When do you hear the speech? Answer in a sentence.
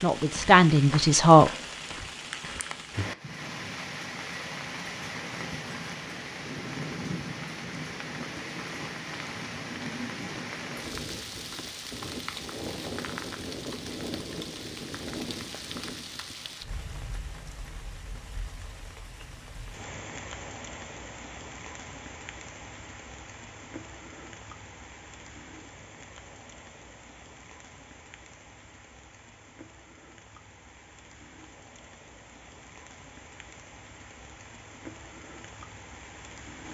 You can hear the speech from 0.0 to 1.5 s.